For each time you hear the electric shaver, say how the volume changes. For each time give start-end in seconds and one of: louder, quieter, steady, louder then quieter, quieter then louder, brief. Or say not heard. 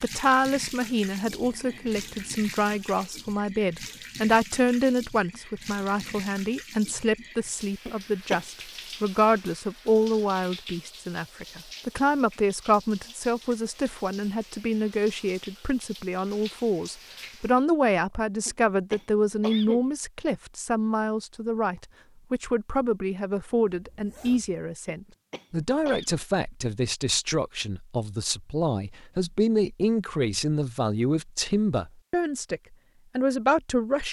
not heard.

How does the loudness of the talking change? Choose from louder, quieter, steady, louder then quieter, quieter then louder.
steady.